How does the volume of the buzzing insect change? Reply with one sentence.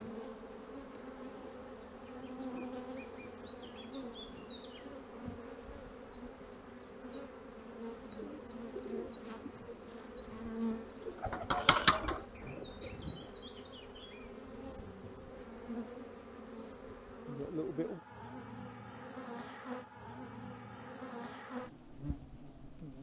The volume of the buzzing insect stays about the same.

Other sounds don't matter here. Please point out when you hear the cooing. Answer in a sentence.
You can hear the cooing from 8.1 to 13.3 s.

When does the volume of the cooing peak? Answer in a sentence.
The loudest moment of the cooing is at 12 seconds.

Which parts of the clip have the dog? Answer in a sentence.
You can't hear the dog here.